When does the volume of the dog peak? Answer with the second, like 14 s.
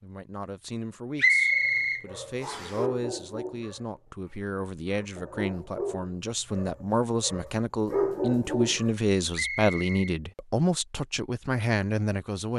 8 s.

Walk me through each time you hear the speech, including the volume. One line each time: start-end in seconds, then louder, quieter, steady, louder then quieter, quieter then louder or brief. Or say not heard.
0.0-12.5 louder.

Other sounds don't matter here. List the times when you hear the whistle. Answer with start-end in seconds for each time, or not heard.
1.1-2.8, 9.3-10.2.